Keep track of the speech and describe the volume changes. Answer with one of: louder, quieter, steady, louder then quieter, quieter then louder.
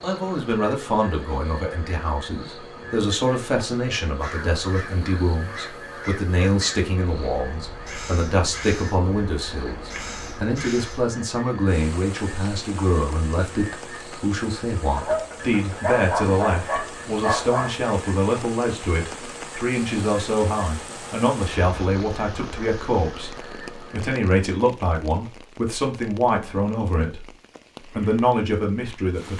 steady.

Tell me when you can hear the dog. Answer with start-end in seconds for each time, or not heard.
14.9-17.8.